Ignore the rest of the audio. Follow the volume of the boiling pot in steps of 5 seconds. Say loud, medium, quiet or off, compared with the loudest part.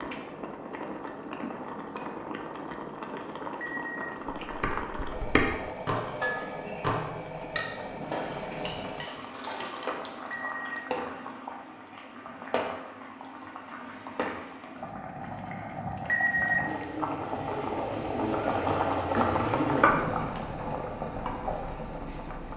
medium, medium, medium, loud, medium.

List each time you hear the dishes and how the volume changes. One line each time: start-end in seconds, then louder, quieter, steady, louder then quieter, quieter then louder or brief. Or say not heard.
4.5-10.0 quieter.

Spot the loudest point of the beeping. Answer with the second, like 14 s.
16 s.